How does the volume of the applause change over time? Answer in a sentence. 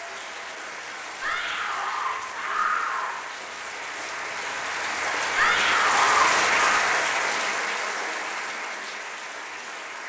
The volume of the applause goes up, then down.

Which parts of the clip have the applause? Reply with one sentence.
You can hear the applause from 0.0 to 10.0 s.